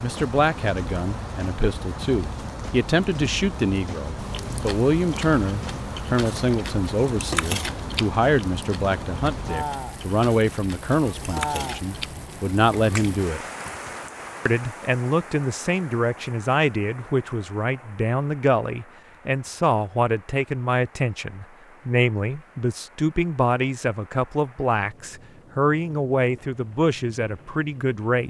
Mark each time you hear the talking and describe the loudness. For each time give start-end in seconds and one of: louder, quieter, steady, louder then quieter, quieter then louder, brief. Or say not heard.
0.0-13.4 steady
14.4-28.2 steady.